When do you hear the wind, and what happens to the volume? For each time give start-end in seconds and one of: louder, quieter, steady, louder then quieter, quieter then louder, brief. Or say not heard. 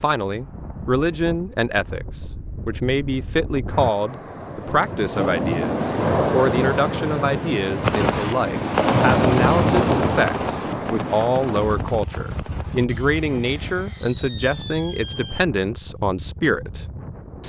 0.2-17.4 louder then quieter.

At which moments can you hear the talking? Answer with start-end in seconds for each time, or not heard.
0.0-17.4.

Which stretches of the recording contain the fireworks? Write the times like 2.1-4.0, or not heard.
7.8-15.4.